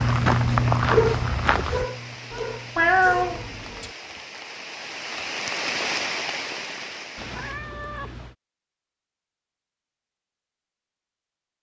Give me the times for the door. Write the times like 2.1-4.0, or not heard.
not heard.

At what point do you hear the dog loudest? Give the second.
1 s.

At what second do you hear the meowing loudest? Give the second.
3 s.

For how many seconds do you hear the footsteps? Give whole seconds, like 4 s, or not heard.
2 s.